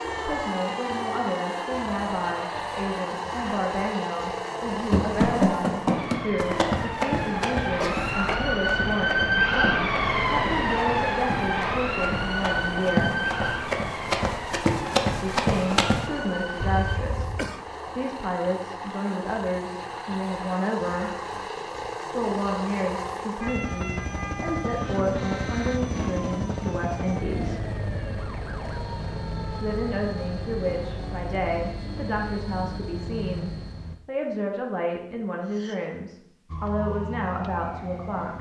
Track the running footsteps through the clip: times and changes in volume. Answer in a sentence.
The running footsteps can be heard from 4.9 to 16.1 s, getting quieter then louder.